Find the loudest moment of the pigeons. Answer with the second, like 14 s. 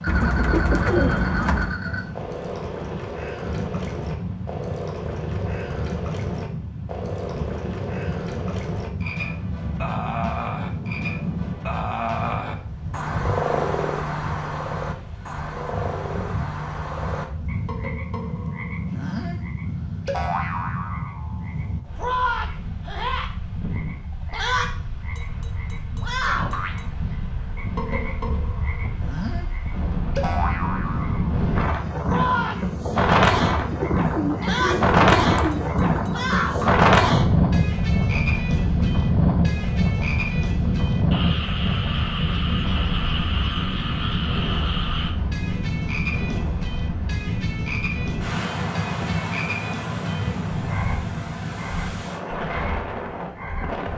1 s.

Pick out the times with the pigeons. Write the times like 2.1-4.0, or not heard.
0.1-1.8, 33.4-35.9.